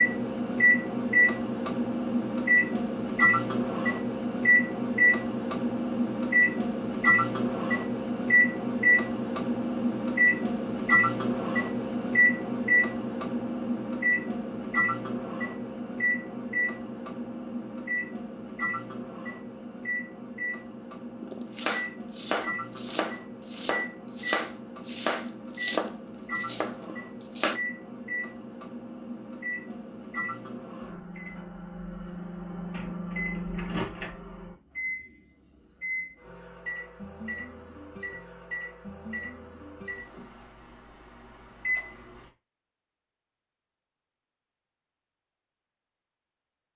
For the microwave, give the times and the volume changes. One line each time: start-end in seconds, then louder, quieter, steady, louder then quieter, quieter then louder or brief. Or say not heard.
0.0-42.3 quieter.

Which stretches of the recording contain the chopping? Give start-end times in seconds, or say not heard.
21.2-27.6.